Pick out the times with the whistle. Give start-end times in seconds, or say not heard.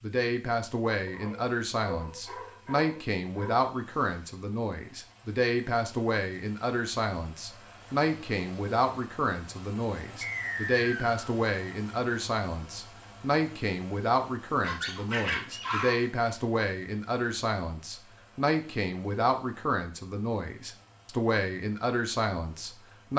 10.2-11.3.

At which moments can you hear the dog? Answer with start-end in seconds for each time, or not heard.
1.1-3.7, 14.6-16.1.